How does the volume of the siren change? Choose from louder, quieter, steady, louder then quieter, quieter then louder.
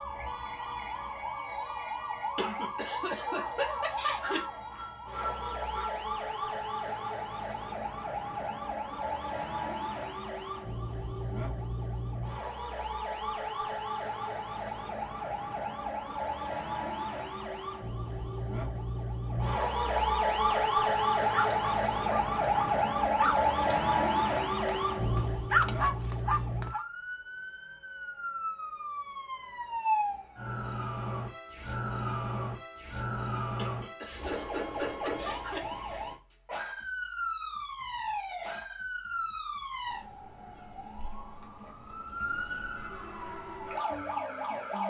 louder then quieter.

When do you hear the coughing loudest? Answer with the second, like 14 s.
4 s.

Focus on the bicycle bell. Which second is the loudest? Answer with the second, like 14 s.
5 s.